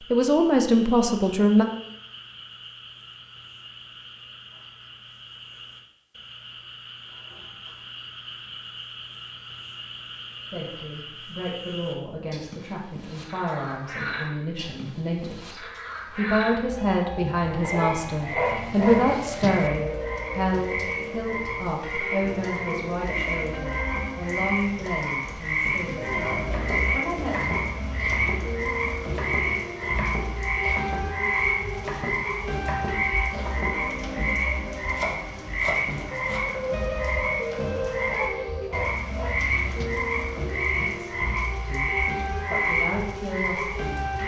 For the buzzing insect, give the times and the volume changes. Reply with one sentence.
The buzzing insect can't be heard in this clip.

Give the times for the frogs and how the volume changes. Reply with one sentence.
The frogs can be heard from 0.0 to 44.2 s, getting louder.